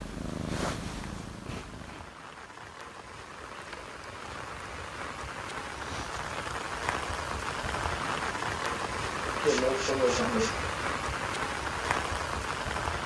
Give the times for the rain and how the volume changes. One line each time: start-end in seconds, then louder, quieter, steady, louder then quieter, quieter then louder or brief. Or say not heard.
0.0-13.0 louder.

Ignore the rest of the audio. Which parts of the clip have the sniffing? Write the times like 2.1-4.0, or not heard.
1.4-2.0, 5.8-6.2, 9.4-10.6.